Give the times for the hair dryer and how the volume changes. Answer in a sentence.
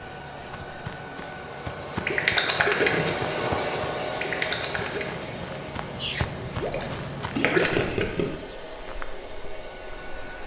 The hair dryer can be heard from 0.0 to 10.4 s, getting louder then quieter.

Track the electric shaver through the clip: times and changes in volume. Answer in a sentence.
The electric shaver can't be heard in this clip.